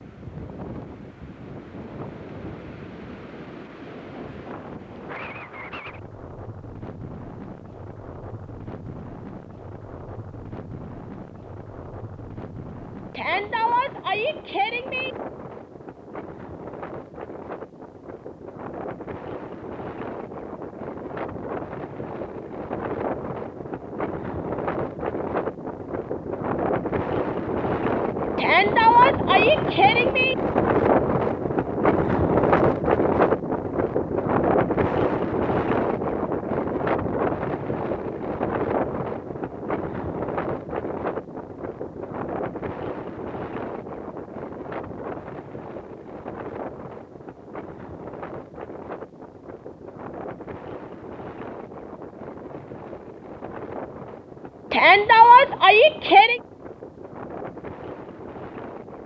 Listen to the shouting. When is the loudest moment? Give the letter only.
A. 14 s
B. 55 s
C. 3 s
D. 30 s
B.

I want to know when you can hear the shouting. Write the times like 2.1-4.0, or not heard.
13.2-15.2, 28.4-30.4, 54.7-56.4.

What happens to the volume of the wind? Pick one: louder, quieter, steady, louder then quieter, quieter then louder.
louder then quieter.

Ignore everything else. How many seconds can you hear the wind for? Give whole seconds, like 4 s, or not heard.
59 s.